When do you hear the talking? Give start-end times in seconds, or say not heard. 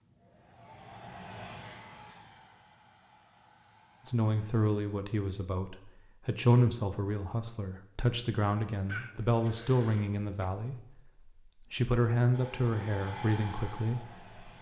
4.0-14.3.